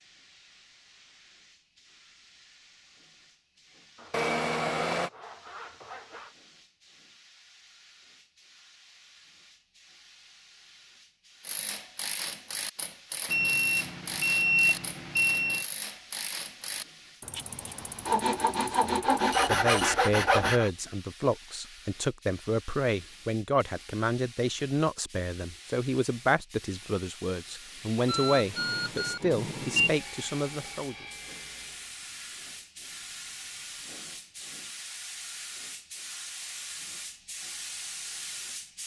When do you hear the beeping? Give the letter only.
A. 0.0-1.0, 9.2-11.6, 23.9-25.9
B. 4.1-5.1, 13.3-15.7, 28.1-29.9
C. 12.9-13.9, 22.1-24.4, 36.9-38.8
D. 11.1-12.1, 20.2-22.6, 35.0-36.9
B.